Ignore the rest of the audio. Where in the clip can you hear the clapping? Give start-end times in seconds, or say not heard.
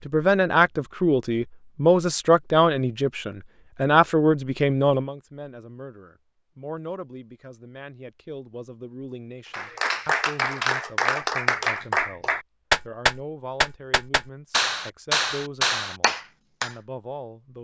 9.5-16.8.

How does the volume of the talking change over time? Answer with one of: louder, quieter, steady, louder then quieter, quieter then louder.
quieter.